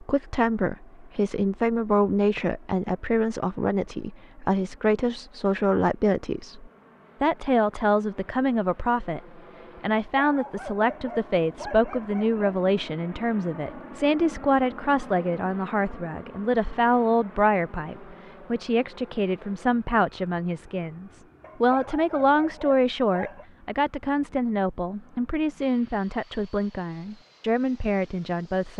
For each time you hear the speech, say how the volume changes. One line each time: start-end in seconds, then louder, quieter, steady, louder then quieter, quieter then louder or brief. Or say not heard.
0.0-28.7 steady.